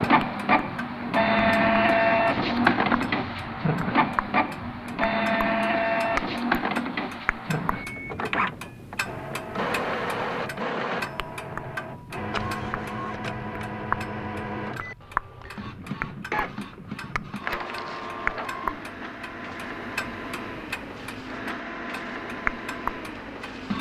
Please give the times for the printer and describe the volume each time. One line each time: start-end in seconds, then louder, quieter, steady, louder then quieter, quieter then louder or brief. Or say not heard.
0.0-23.7 quieter.